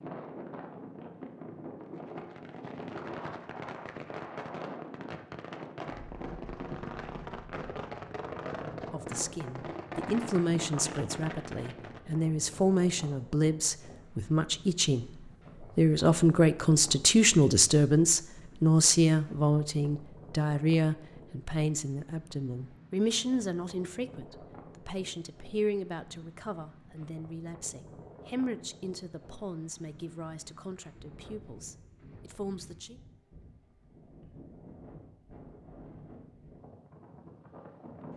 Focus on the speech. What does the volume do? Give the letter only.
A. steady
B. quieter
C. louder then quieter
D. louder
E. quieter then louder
C.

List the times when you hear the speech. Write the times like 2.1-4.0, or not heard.
8.9-15.1, 15.8-33.0.